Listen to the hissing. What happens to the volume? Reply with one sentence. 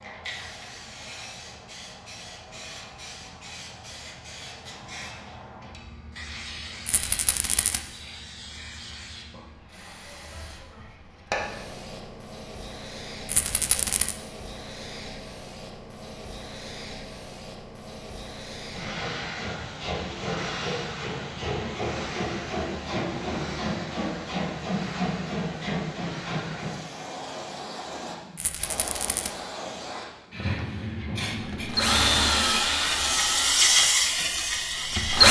The volume of the hissing goes up.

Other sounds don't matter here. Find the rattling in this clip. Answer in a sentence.
The rattling can be heard from 6.8 to 7.8 s, from 13.2 to 14.2 s and from 28.4 to 29.3 s.